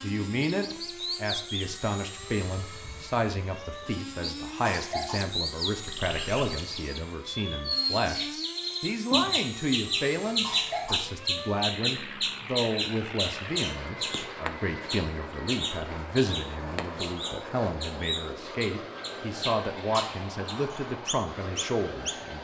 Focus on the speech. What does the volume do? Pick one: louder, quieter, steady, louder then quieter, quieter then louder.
steady.